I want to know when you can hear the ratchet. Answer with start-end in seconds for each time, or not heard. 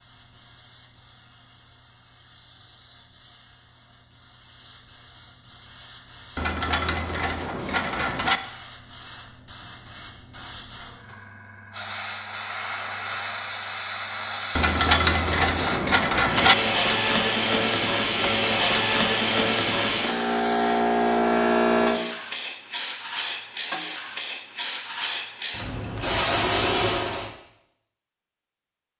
6.3-8.4, 14.6-16.6.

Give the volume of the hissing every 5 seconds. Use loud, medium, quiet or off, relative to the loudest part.
quiet, quiet, medium, loud, loud, loud.